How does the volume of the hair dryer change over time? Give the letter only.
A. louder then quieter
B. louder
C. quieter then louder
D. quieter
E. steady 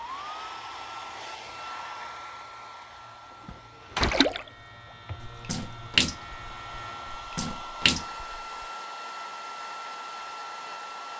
C.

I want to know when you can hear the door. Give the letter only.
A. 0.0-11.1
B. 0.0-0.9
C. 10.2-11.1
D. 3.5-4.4
D.